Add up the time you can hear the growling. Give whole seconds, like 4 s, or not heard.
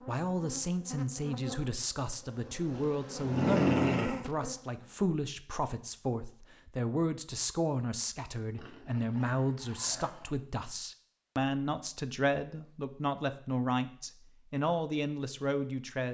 3 s.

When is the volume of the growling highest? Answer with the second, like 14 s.
4 s.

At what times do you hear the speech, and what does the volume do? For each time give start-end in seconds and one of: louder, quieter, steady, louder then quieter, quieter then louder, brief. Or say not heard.
0.1-16.0 steady.